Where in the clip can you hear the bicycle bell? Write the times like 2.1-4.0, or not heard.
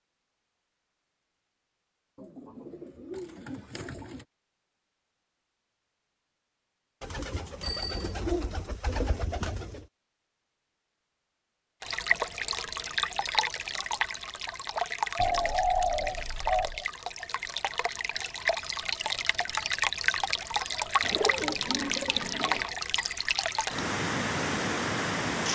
7.6-8.2.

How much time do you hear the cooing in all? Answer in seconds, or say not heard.
8 s.